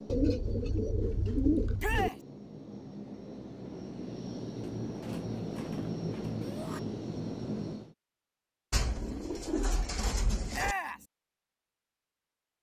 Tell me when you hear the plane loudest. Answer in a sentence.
The volume of the plane peaks at 6 seconds.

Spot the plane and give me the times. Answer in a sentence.
You can hear the plane from 0.0 to 8.0 s.